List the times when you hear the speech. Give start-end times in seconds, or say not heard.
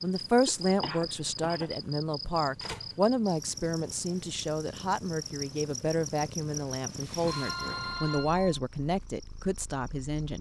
0.0-10.3.